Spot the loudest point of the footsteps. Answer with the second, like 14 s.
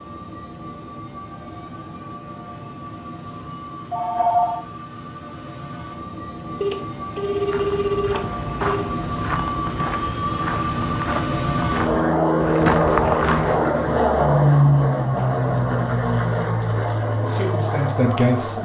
13 s.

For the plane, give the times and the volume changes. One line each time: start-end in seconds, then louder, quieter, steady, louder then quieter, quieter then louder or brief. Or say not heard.
0.0-18.5 louder.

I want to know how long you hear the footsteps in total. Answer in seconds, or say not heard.
6 s.